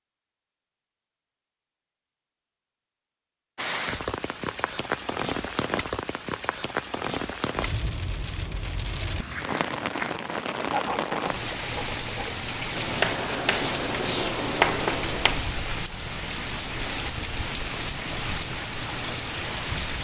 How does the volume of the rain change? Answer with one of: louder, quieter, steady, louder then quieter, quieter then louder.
steady.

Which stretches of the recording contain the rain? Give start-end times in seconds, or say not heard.
3.5-19.9.